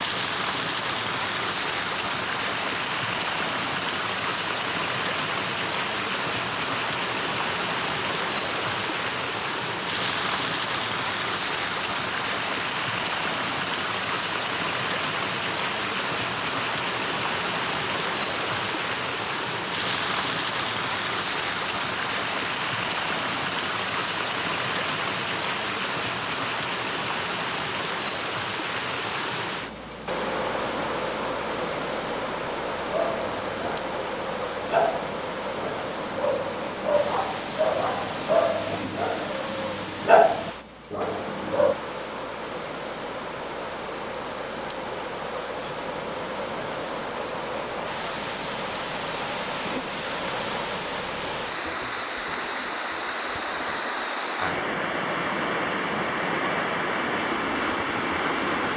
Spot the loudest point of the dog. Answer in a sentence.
The volume of the dog peaks at 40 seconds.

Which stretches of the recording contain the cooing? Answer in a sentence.
The cooing can't be heard in this clip.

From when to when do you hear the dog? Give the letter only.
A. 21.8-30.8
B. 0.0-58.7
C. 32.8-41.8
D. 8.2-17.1
C.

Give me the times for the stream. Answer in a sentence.
The stream can be heard from 0.0 to 58.7 s.